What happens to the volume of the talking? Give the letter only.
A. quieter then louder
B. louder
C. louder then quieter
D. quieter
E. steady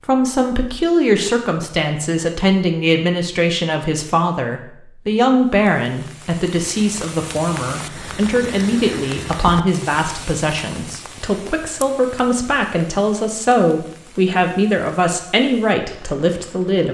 E.